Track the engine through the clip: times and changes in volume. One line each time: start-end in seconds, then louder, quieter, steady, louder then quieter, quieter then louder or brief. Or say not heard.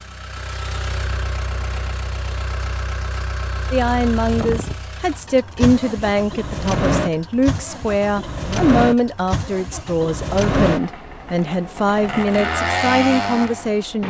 0.0-14.0 louder.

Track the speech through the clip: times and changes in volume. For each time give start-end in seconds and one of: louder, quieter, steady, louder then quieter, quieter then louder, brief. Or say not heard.
3.7-14.0 steady.